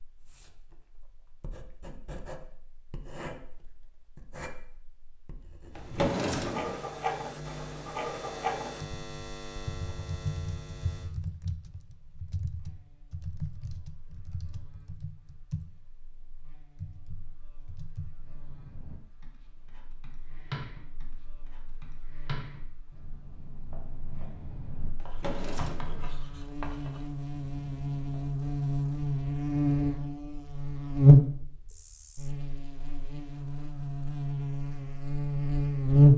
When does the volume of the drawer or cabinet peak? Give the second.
6 s.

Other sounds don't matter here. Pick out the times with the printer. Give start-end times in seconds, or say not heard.
not heard.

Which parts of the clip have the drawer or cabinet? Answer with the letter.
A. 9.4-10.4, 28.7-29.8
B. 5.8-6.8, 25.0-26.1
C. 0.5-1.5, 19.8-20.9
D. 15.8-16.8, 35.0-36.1
B.